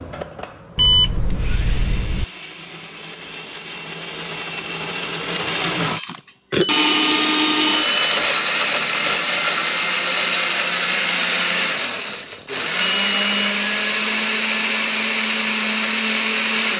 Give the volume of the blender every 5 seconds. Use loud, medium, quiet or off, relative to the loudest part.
quiet, loud, loud, loud.